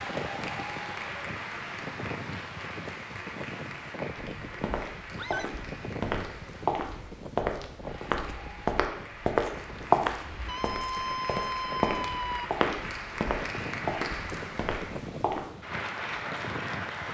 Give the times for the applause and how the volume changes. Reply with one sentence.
The applause can be heard from 0.0 to 17.0 s, getting quieter then louder.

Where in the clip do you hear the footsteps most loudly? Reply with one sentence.
The loudest moment of the footsteps is at 10 seconds.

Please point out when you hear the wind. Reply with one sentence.
You can hear the wind from 0.0 to 17.0 s.